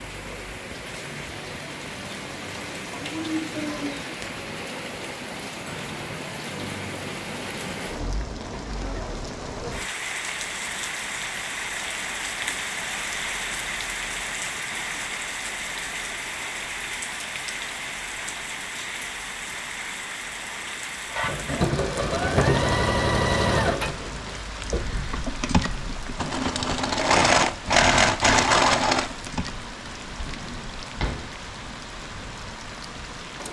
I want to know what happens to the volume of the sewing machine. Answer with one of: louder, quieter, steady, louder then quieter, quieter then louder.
quieter then louder.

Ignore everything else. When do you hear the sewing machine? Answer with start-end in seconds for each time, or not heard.
21.1-29.6.